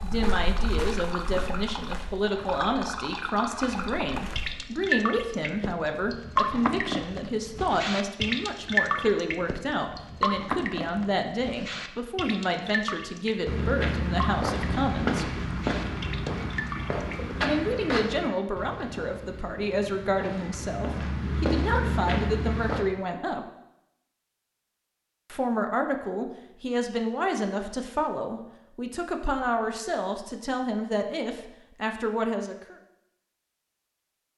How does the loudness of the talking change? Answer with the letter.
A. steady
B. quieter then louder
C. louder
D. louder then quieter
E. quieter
A.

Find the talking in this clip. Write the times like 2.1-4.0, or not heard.
0.0-15.4, 17.4-23.4, 25.3-32.8.